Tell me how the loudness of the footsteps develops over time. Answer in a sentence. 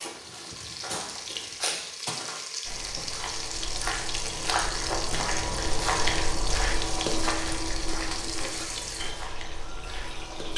The loudness of the footsteps goes up, then down.